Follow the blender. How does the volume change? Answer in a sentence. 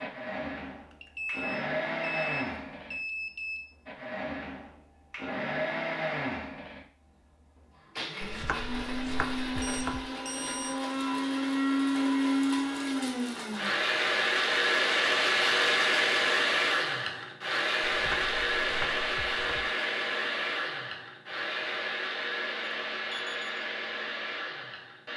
The loudness of the blender goes up, then down.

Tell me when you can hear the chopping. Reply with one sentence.
You can hear the chopping from 8.2 to 10.1 s and from 17.9 to 19.7 s.